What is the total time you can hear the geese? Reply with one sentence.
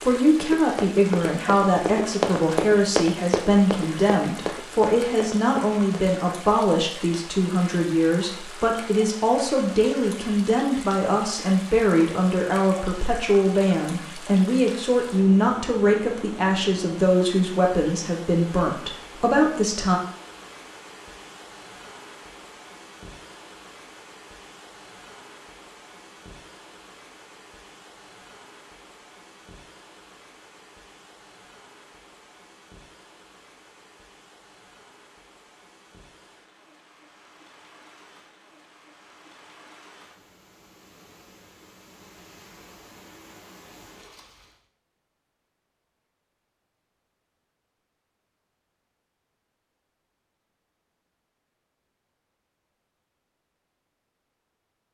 You can't hear the geese here.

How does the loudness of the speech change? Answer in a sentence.
The loudness of the speech stays about the same.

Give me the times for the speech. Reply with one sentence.
You can hear the speech from 0.0 to 20.0 s.